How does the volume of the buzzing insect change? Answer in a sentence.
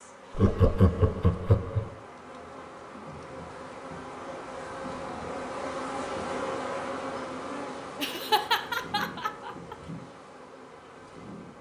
The loudness of the buzzing insect goes up, then down.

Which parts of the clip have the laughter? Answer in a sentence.
You can hear the laughter from 0.3 to 1.9 s and from 8.0 to 9.8 s.